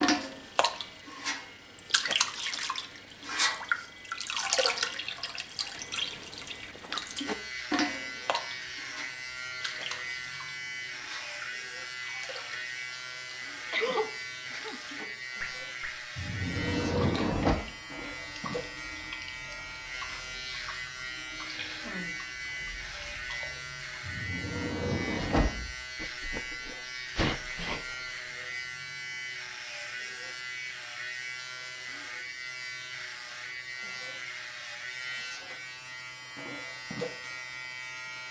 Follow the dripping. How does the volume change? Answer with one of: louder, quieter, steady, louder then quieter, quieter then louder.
quieter.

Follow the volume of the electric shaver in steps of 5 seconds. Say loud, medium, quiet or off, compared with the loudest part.
quiet, loud, loud, loud, loud, loud, loud, loud.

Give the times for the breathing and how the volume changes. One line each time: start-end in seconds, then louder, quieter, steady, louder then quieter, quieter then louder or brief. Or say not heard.
not heard.